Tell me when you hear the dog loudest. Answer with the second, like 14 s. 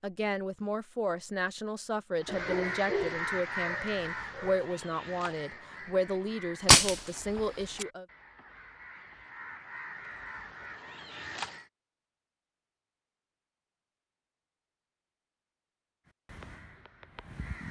3 s.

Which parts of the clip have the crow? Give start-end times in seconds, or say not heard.
2.2-11.7, 16.1-17.6.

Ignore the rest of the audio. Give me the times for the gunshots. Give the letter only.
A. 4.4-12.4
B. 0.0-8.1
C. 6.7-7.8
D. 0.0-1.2
C.